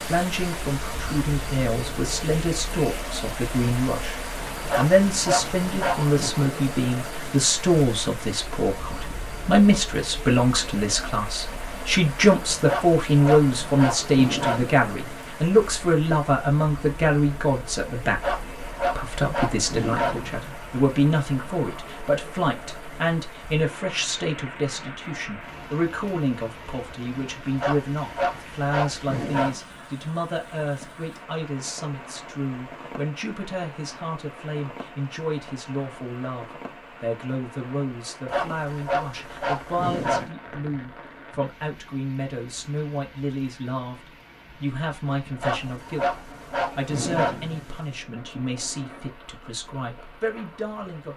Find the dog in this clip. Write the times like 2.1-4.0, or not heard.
4.7-6.3, 12.7-14.7, 18.2-20.4, 27.6-29.6, 38.3-40.3, 45.4-47.9.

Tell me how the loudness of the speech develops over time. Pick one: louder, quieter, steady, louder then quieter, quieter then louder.
quieter.